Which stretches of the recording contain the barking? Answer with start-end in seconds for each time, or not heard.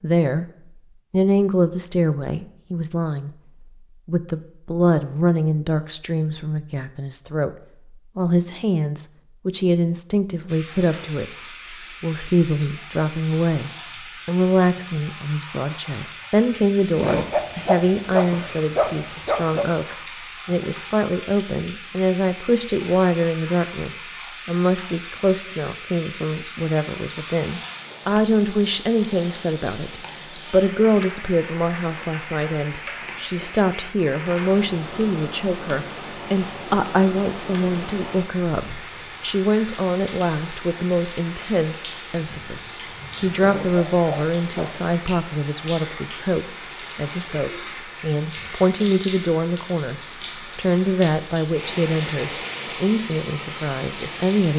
16.9-19.6, 43.4-44.9.